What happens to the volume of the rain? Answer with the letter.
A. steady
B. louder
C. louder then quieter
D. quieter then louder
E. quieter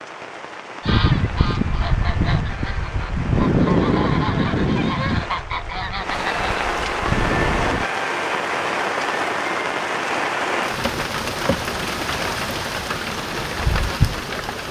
B.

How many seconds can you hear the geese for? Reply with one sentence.
The geese can be heard for 7 seconds in total.